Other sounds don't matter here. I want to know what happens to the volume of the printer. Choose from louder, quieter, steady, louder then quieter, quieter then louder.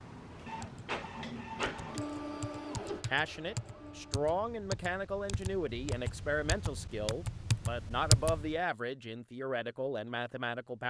quieter.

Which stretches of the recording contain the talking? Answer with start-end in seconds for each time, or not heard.
3.0-10.8.